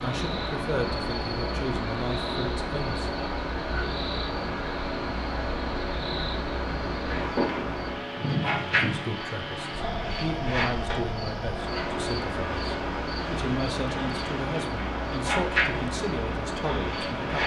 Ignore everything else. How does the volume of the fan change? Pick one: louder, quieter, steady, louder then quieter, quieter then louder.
steady.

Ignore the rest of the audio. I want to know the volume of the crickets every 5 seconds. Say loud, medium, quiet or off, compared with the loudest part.
medium, loud, medium, loud.